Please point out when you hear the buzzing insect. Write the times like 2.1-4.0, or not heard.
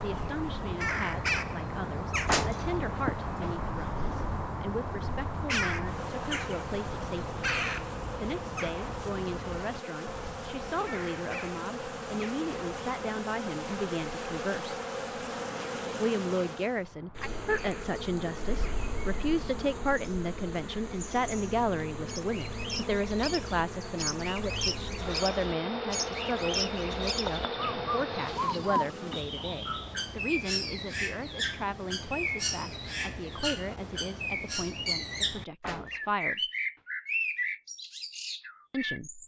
0.0-29.2.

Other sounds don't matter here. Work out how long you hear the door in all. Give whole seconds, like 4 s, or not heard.
2 s.